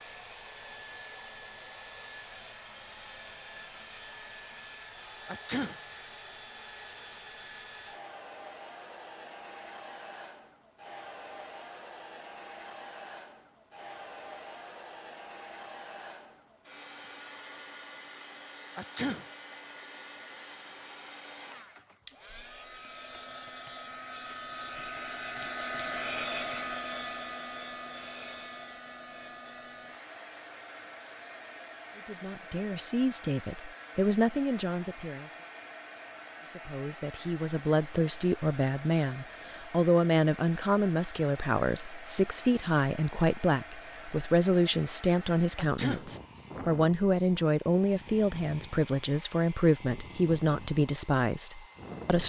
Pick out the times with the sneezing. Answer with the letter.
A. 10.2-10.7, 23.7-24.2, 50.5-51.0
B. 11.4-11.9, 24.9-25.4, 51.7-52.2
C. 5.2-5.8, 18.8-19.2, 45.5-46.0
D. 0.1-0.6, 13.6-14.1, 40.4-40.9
C.